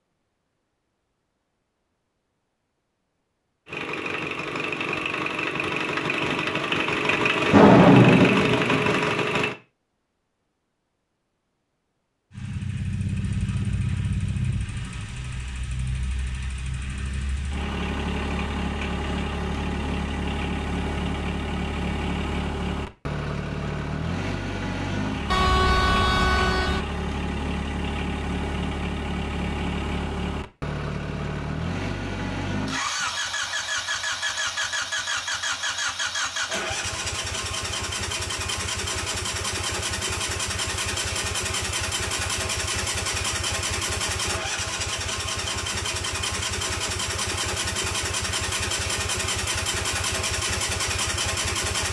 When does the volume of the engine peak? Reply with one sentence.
The volume of the engine peaks at 8 seconds.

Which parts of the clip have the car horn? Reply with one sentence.
You can hear the car horn from 25.3 to 26.9 s.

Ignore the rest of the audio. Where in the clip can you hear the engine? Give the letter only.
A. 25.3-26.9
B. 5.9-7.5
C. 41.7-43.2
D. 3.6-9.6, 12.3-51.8
D.